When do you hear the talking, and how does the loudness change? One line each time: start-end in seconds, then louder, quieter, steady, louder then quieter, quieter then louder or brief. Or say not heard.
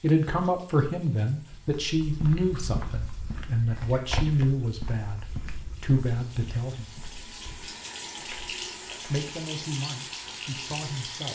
0.0-6.9 steady
9.1-11.3 brief.